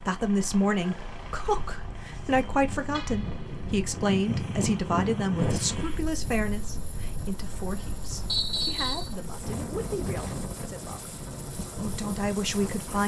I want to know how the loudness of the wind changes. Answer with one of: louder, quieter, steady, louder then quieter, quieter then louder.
louder then quieter.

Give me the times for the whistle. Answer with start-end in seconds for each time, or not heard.
8.2-9.2.